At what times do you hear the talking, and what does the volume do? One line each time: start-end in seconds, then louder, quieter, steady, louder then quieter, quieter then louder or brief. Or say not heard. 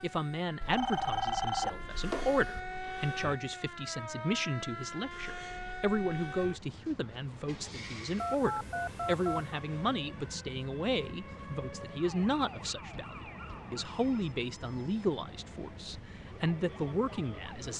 0.0-17.7 steady.